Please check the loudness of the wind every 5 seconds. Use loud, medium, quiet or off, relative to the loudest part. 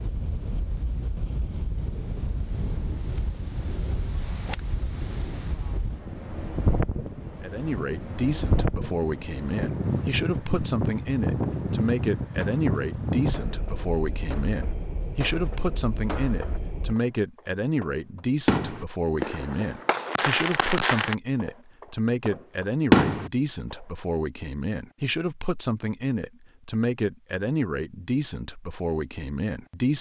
medium, loud, loud, medium, off, off.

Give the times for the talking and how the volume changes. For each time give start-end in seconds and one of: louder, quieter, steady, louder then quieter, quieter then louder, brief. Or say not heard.
7.4-29.9 steady.